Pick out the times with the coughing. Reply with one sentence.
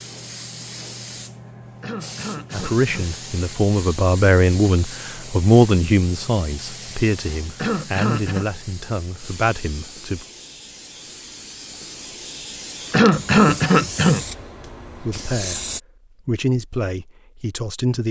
You can hear the coughing from 1.8 to 3.1 s, from 7.5 to 8.4 s and from 12.9 to 14.2 s.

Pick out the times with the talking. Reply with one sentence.
You can hear the talking from 2.5 to 10.2 s, from 15.0 to 15.6 s and from 16.2 to 18.0 s.